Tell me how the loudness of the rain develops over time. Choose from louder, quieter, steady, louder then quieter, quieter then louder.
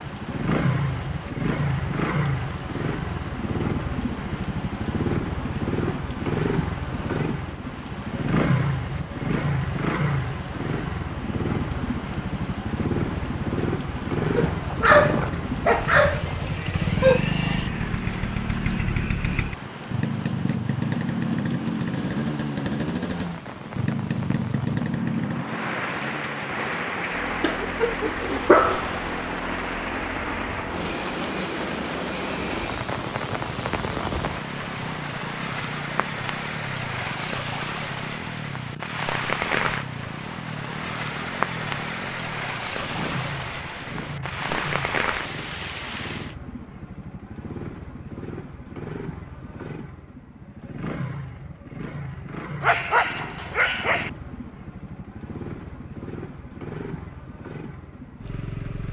louder.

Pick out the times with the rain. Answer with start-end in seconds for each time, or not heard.
0.0-46.4.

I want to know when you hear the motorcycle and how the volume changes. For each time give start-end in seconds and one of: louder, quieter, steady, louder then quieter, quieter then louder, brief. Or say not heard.
0.0-58.8 quieter.